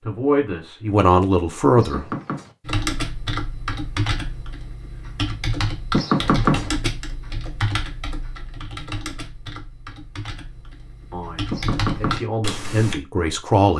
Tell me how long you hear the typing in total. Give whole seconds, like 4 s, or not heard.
10 s.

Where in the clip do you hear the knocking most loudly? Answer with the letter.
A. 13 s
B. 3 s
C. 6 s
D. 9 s
C.